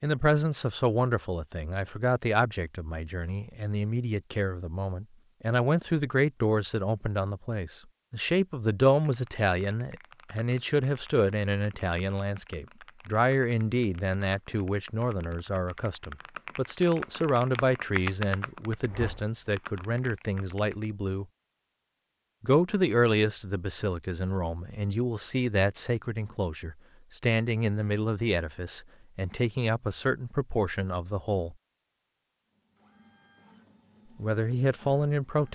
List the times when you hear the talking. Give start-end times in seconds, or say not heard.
0.0-21.2, 22.4-31.6, 34.1-35.5.